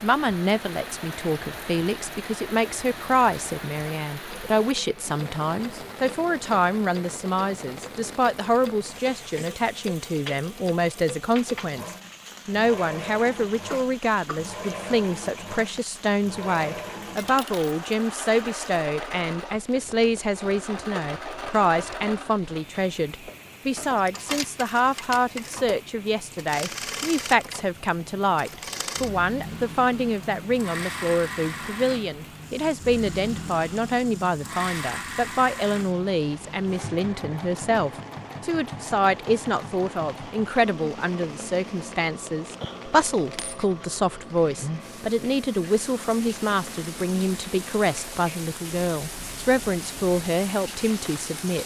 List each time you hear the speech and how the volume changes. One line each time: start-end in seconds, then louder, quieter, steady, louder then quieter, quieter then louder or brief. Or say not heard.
0.0-51.6 steady.